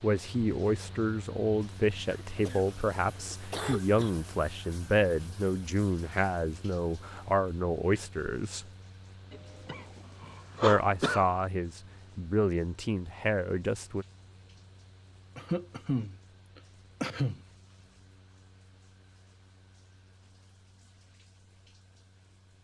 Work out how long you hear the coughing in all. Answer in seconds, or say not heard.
6 s.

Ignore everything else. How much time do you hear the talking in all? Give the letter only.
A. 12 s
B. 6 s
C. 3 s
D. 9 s
A.